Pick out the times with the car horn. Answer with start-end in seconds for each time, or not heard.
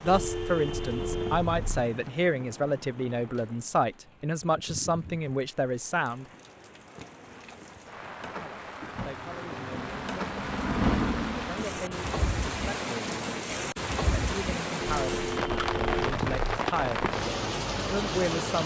0.1-1.6, 14.8-16.6.